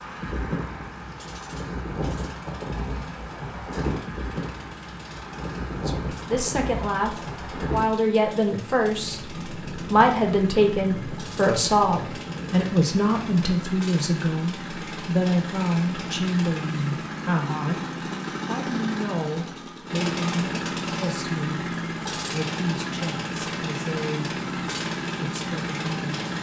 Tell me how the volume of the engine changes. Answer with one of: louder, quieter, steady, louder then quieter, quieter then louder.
louder.